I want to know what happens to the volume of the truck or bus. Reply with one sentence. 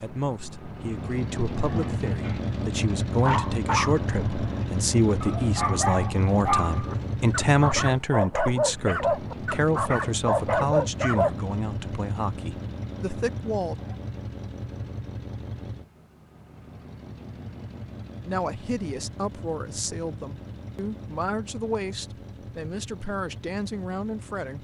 The loudness of the truck or bus goes down.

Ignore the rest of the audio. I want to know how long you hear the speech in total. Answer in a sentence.
The speech can be heard for 20 seconds in total.